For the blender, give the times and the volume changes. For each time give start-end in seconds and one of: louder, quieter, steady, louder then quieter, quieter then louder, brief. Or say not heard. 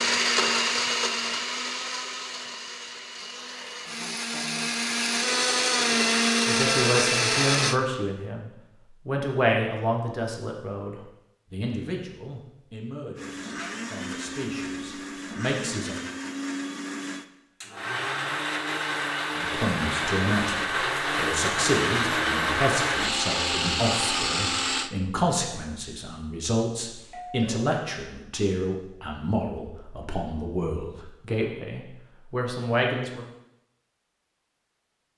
0.0-7.8 quieter then louder
13.2-24.9 louder.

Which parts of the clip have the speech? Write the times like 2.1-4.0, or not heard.
6.5-15.9, 19.4-33.2.